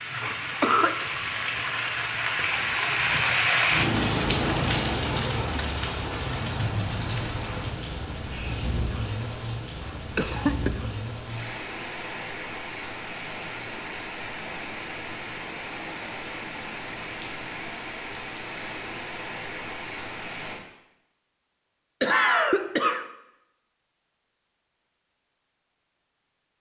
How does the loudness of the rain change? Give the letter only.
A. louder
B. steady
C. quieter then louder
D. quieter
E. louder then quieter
D.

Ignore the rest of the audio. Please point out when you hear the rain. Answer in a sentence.
The rain can be heard from 0.0 to 20.6 s.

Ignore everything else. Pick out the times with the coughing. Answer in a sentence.
You can hear the coughing from 0.2 to 1.1 s, from 9.8 to 10.8 s and from 22.0 to 23.1 s.